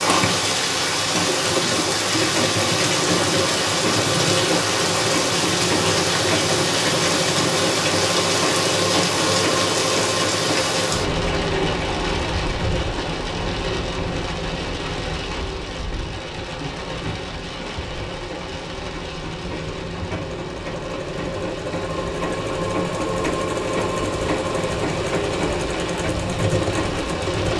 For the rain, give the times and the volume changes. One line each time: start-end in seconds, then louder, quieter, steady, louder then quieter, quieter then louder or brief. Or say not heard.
0.0-27.5 quieter.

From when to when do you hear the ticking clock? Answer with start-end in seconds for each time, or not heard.
not heard.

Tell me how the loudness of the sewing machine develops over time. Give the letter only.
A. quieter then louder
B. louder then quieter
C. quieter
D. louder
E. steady
A.